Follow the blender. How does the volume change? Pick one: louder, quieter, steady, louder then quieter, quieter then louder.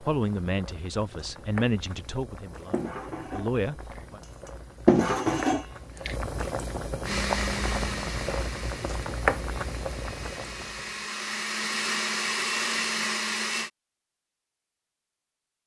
quieter then louder.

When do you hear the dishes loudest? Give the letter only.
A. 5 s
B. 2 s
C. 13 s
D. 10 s
A.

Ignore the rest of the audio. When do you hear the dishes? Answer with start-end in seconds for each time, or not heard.
2.7-6.1.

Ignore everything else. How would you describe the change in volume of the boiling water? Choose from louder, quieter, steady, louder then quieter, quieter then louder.
louder.